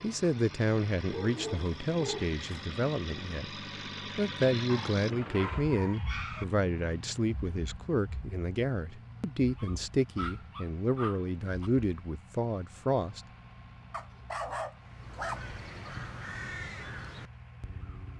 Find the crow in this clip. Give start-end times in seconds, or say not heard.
14.8-18.1.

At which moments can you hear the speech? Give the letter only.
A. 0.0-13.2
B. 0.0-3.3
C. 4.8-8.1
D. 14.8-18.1
A.